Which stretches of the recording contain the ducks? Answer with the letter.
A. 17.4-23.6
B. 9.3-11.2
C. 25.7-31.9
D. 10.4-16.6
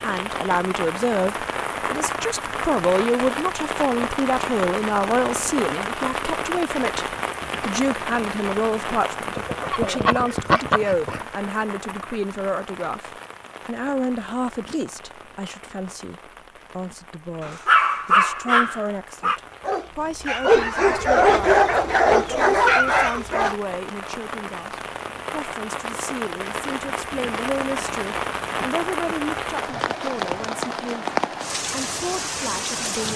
B.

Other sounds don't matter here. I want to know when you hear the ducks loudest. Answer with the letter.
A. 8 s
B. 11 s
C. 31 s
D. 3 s
B.